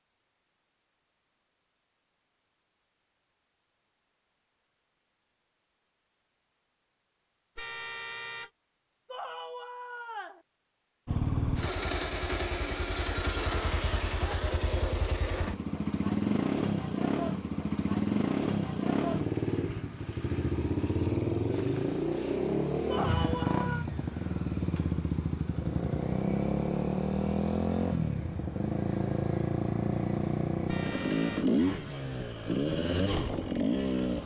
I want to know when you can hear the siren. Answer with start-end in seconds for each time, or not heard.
not heard.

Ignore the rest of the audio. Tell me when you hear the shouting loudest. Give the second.
23 s.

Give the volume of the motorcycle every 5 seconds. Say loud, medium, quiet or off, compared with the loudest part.
off, off, loud, loud, loud, loud, loud.